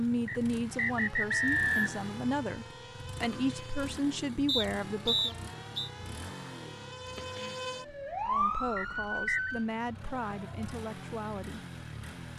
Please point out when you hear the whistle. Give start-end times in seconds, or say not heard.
0.2-1.9, 4.5-5.9, 8.8-9.5.